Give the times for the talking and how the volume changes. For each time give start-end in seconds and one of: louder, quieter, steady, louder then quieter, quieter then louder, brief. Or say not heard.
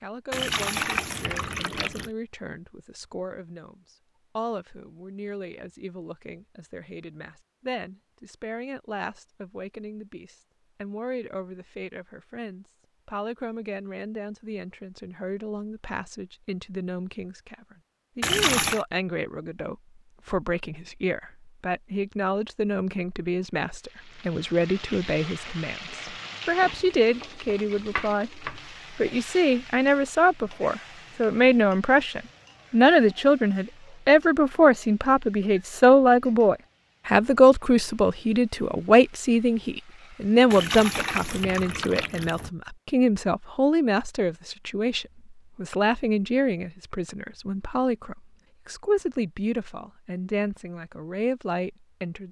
0.0-52.2 louder then quieter.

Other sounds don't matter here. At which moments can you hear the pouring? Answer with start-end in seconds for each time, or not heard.
0.3-2.1, 18.2-18.9, 40.5-42.5.